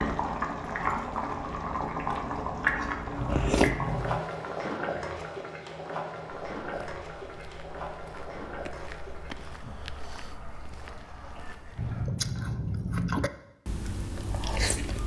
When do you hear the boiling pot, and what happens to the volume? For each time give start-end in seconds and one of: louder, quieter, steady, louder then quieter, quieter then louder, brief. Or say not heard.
0.0-12.1 quieter.